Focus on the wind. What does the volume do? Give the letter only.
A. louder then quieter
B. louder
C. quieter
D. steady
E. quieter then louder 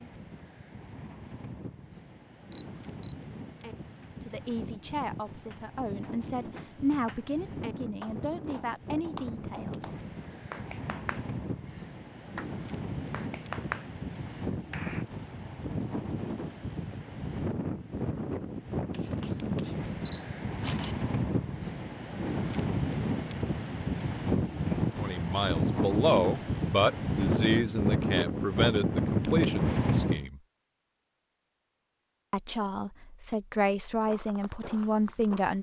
B.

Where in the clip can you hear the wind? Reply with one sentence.
You can hear the wind from 0.0 to 30.2 s.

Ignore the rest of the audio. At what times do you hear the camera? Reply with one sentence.
You can hear the camera from 2.5 to 3.1 s and from 18.9 to 20.9 s.